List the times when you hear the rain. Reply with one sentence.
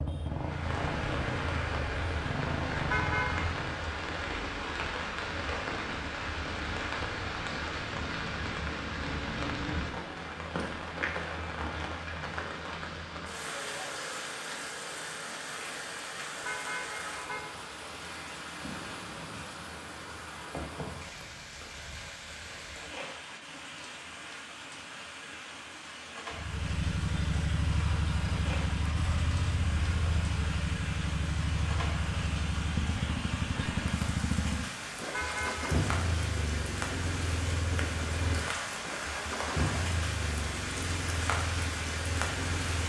You can hear the rain from 0.0 to 42.8 s.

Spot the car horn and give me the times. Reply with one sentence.
You can hear the car horn from 2.9 to 3.5 s, from 16.4 to 17.6 s and from 35.1 to 35.8 s.